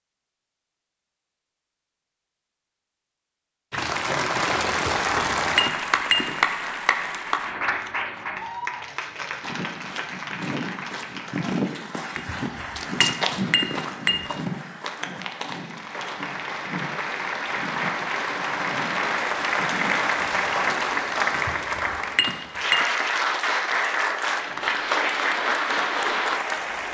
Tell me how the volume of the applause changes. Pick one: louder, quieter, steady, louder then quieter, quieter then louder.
quieter then louder.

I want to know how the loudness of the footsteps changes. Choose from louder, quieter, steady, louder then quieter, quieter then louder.
quieter.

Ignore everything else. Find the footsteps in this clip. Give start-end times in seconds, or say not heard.
9.4-20.8.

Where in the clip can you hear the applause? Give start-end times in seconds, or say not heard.
3.7-26.8.